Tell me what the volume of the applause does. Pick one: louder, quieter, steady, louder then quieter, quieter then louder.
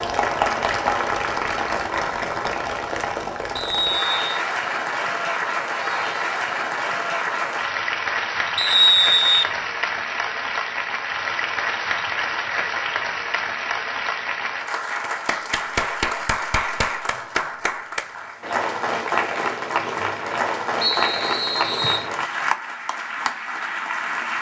steady.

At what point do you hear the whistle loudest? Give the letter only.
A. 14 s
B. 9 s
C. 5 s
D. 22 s
B.